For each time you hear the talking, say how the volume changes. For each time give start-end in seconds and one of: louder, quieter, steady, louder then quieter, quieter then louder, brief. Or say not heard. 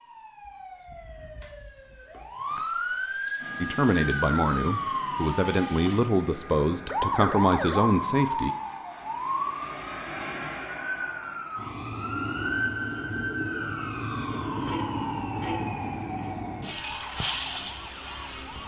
3.6-8.5 steady.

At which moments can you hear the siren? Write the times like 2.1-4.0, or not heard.
0.0-18.6.